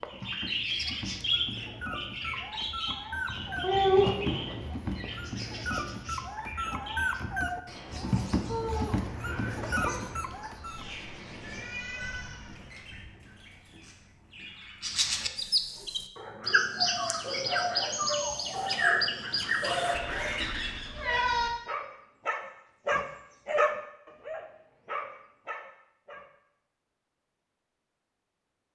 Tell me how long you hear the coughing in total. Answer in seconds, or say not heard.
3 s.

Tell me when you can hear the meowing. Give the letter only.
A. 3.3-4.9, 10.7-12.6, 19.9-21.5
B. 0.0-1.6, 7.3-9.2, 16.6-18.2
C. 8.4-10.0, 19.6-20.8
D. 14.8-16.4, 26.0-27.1
A.